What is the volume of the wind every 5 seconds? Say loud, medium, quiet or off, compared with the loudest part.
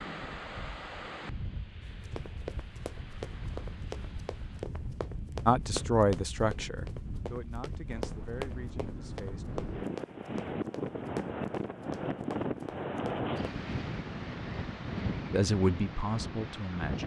medium, medium, loud, loud.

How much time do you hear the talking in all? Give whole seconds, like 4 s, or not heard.
6 s.